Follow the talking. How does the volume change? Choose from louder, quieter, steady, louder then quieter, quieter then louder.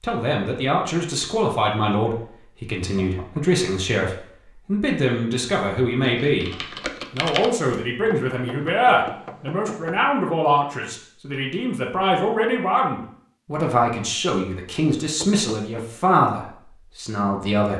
steady.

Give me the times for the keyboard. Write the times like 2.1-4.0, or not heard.
6.0-7.7.